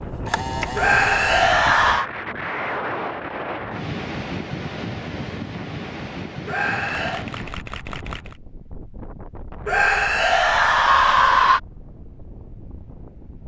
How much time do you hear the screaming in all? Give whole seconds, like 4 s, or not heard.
4 s.